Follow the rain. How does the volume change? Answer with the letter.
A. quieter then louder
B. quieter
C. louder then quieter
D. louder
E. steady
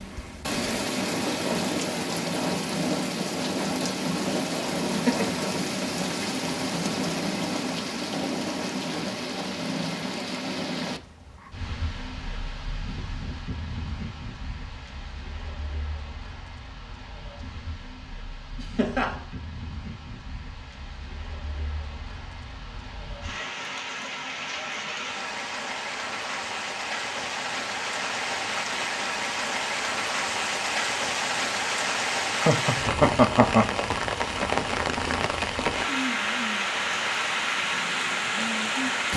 A.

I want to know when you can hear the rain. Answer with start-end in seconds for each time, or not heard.
0.0-39.1.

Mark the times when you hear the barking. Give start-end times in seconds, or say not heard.
not heard.